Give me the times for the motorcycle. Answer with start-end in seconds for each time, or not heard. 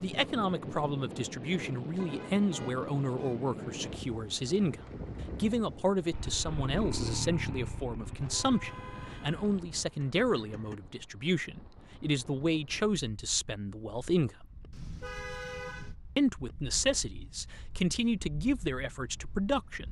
6.1-10.8.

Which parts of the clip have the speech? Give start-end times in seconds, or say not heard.
0.0-14.3, 16.1-19.8.